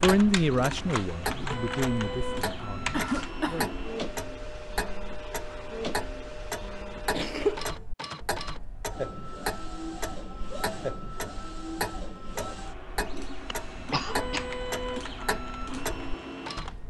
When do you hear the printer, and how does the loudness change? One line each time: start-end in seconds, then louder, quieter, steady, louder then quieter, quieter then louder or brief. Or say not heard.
0.2-16.8 steady.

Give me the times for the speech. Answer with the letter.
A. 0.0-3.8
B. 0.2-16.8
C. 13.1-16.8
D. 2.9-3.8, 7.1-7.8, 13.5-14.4
A.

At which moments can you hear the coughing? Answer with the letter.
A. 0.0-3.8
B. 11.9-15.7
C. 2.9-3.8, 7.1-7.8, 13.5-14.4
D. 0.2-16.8
C.